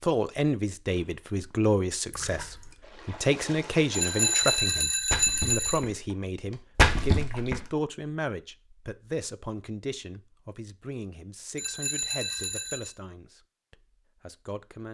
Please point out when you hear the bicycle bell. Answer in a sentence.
The bicycle bell can be heard from 3.9 to 5.8 s and from 11.6 to 12.9 s.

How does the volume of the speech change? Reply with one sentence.
The volume of the speech goes down.